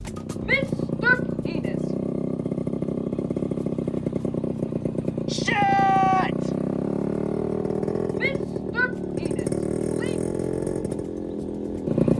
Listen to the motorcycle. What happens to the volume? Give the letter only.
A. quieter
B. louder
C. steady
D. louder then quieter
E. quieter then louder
C.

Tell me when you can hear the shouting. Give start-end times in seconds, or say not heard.
0.5-1.9, 5.2-6.5, 8.2-10.2.